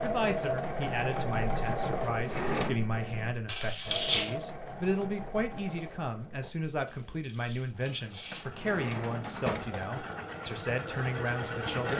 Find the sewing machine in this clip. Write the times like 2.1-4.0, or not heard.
0.0-11.9.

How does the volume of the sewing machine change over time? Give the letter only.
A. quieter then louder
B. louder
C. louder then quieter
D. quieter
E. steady
A.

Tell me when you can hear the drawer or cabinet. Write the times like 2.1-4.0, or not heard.
2.1-2.8, 8.4-10.2.